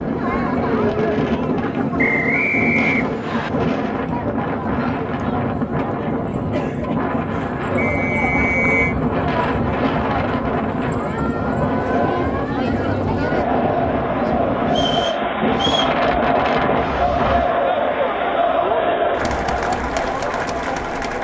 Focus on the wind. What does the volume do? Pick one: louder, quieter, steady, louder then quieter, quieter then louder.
steady.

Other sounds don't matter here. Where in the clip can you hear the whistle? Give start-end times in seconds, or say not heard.
1.9-3.5, 7.8-8.9, 14.7-15.9.